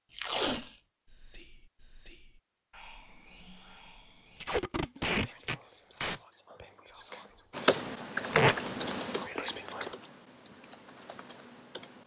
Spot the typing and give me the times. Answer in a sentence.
The typing can be heard from 7.5 to 12.0 s.